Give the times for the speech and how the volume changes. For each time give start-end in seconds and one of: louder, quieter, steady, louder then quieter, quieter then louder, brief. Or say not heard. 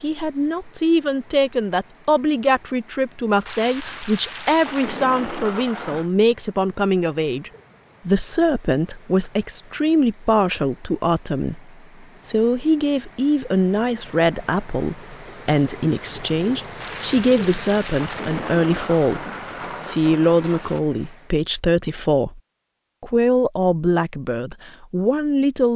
0.0-22.4 steady
23.0-25.7 brief.